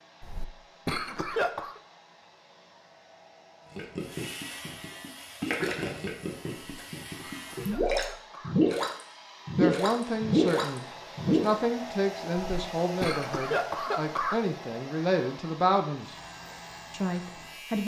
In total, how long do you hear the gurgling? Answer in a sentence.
You can hear the gurgling for 8 seconds altogether.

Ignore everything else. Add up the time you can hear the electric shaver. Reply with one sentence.
The electric shaver can be heard for 6 seconds in total.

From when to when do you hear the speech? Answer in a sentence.
You can hear the speech from 9.6 to 16.1 s and from 16.9 to 17.8 s.